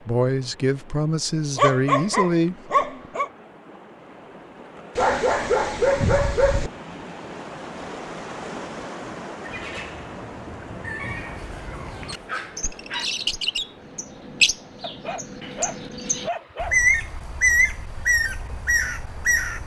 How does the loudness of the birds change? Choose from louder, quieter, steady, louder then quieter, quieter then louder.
louder.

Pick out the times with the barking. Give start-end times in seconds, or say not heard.
1.6-3.3, 5.0-6.7, 11.3-13.1, 14.8-16.8.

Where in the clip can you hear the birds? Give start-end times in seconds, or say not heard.
9.4-19.6.